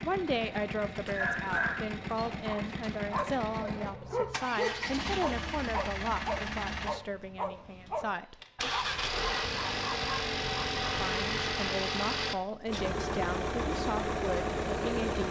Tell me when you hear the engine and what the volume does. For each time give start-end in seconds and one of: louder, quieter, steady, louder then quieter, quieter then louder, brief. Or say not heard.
0.0-15.2 louder.